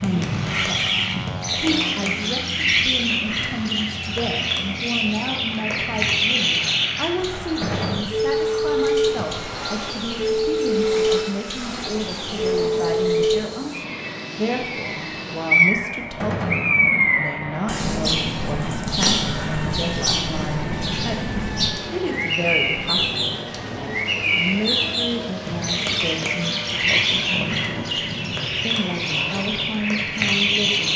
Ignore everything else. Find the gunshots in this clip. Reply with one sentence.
You can hear the gunshots from 7.6 to 8.1 s and from 16.2 to 16.7 s.